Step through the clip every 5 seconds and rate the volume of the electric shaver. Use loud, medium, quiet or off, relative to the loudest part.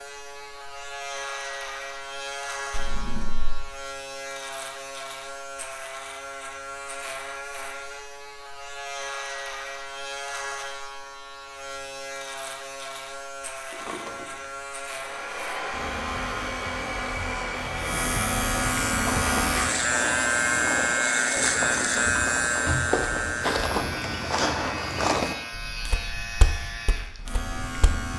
medium, medium, medium, loud, loud, medium.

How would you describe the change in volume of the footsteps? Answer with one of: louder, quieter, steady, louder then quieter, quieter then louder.
louder then quieter.